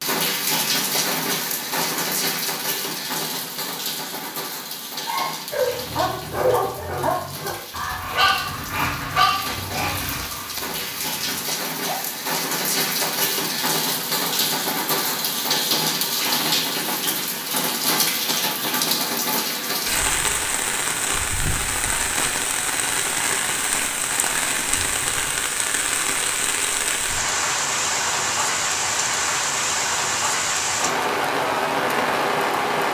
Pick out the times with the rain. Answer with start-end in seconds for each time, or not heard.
0.0-32.9.